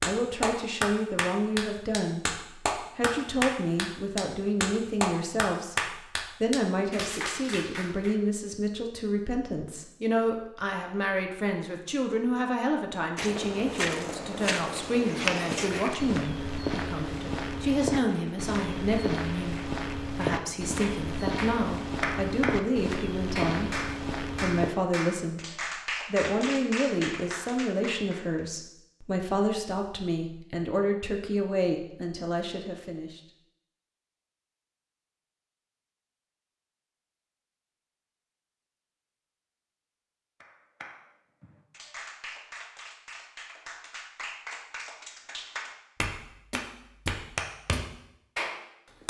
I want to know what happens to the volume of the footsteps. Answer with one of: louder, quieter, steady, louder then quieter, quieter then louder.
steady.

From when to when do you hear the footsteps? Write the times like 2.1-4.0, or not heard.
13.2-24.7.